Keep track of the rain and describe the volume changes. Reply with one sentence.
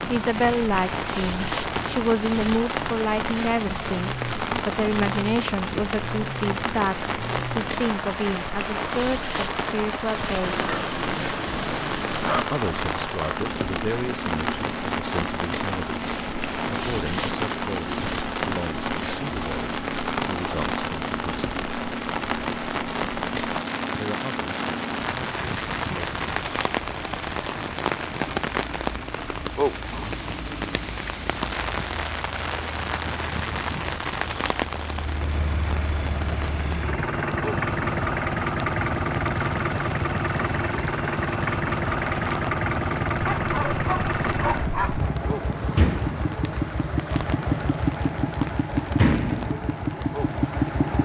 The loudness of the rain goes down.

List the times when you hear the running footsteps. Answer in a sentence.
You can't hear the running footsteps here.